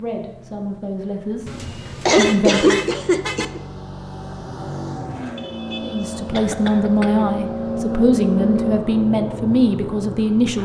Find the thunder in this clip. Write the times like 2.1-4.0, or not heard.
not heard.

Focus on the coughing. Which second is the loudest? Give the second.
3 s.